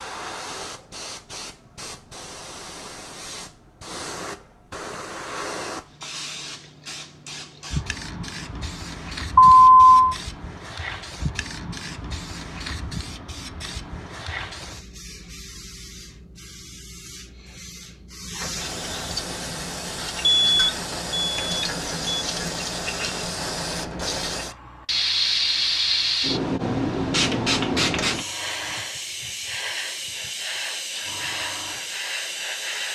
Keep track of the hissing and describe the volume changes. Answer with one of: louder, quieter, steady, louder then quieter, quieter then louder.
louder.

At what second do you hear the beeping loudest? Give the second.
10 s.